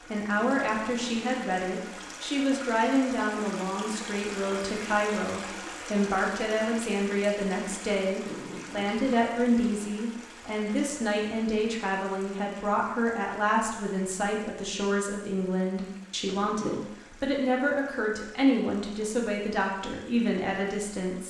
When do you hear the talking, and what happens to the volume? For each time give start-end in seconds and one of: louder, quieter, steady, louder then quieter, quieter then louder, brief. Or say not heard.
0.1-21.2 steady.